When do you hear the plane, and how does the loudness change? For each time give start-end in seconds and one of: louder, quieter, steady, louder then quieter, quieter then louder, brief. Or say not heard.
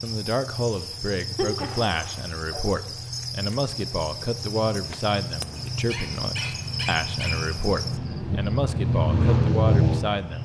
0.0-10.3 louder.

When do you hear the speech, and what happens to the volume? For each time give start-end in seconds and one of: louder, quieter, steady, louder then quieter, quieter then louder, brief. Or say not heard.
0.0-10.3 steady.